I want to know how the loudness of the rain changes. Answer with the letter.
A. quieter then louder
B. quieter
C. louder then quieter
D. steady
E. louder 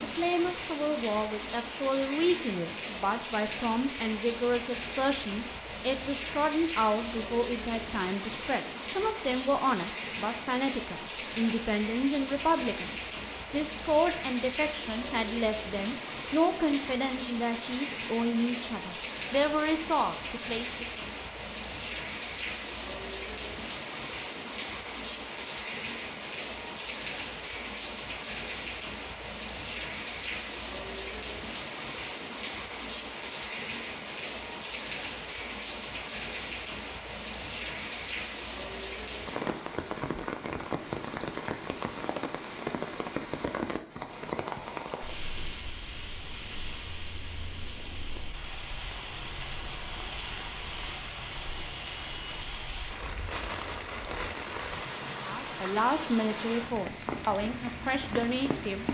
D.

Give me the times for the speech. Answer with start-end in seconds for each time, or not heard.
0.0-20.9, 55.2-58.8.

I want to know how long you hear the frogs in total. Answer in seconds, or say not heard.
not heard.